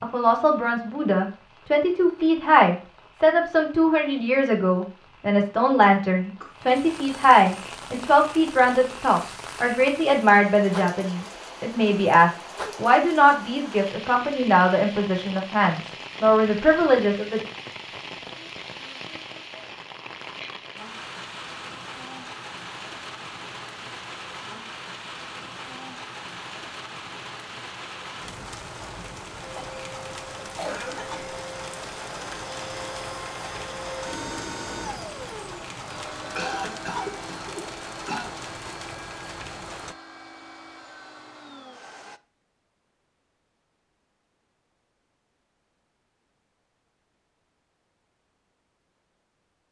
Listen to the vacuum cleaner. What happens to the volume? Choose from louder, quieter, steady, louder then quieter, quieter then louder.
quieter.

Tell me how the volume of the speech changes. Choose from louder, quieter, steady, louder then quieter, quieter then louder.
steady.